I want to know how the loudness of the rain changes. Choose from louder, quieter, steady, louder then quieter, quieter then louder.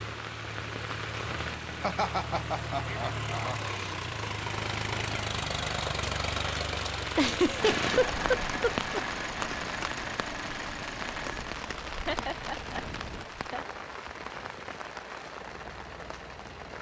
louder then quieter.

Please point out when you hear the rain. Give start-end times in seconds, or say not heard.
0.0-16.7.